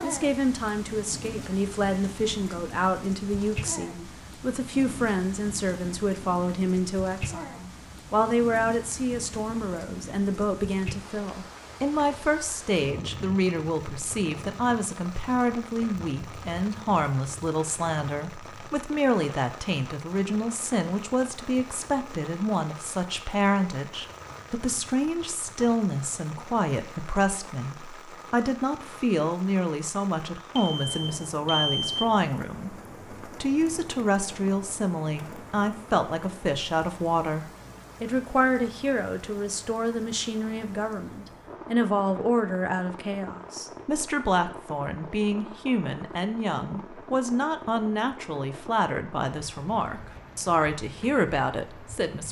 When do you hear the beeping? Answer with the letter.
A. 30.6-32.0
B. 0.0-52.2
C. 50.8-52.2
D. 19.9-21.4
A.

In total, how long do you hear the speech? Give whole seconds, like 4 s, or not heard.
52 s.